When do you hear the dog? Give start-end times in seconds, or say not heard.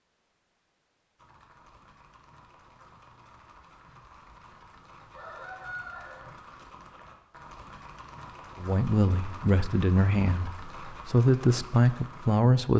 not heard.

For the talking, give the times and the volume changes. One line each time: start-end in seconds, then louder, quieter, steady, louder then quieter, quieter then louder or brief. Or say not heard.
8.6-12.7 quieter then louder.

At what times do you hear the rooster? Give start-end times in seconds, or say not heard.
5.1-6.3.